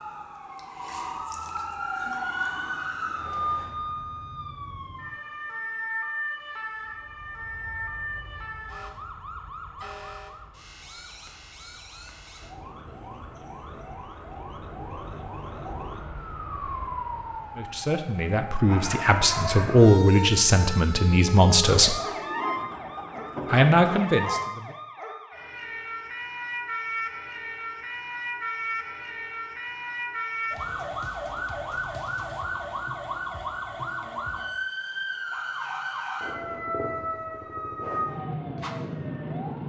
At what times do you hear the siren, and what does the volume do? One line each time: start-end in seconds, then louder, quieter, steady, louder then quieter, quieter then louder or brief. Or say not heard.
0.0-39.6 quieter then louder.